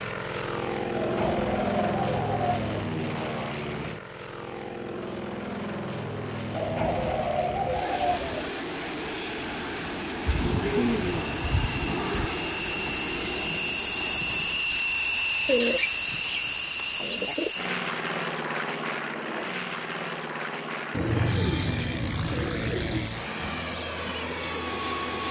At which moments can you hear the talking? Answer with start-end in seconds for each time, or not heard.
not heard.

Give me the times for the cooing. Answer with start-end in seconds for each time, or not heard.
0.9-2.9, 6.5-8.5, 10.2-12.2, 15.4-17.5, 20.9-23.1.